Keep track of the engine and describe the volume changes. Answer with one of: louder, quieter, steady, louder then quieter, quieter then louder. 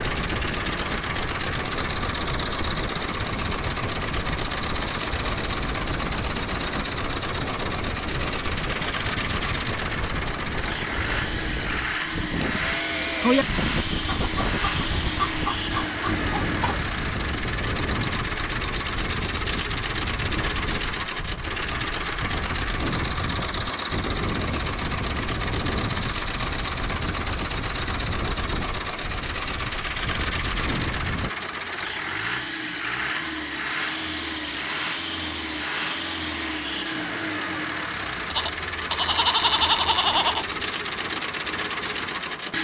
steady.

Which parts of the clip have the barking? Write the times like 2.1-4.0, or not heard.
not heard.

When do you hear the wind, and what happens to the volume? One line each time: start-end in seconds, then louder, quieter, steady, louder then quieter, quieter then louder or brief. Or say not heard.
0.0-31.4 steady.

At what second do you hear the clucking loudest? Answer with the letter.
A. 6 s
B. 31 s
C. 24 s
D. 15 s
D.